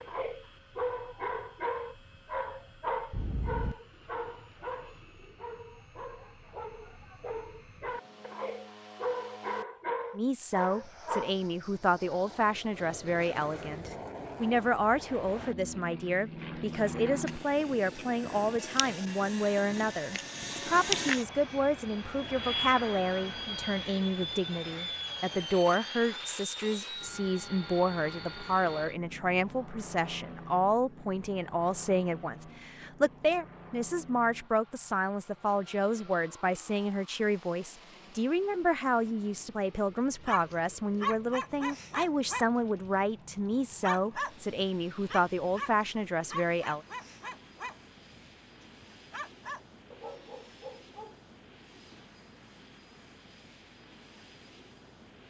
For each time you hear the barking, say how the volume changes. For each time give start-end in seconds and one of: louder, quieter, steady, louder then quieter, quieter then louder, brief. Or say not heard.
0.0-11.3 quieter then louder
40.2-51.2 quieter.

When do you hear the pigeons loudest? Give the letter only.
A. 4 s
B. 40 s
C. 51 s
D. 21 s
A.